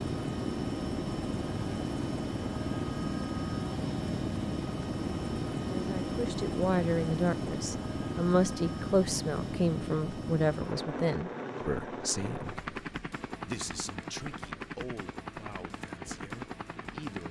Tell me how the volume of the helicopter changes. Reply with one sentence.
The volume of the helicopter goes down.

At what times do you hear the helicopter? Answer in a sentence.
You can hear the helicopter from 0.0 to 17.2 s.